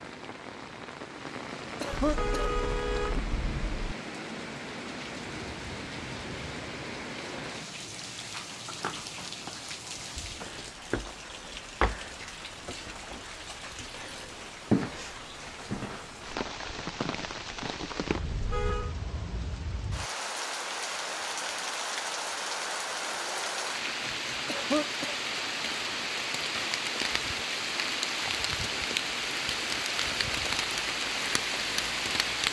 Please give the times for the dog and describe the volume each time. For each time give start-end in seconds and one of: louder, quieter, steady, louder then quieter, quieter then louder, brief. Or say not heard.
not heard.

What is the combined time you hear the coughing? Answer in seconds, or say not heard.
2 s.